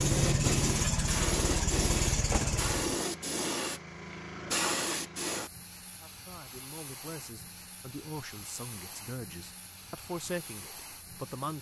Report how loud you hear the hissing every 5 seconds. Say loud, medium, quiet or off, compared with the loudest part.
loud, medium, quiet.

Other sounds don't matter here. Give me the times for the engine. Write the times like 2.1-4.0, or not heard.
0.0-3.0.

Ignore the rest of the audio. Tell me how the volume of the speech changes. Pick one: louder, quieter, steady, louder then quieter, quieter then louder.
louder.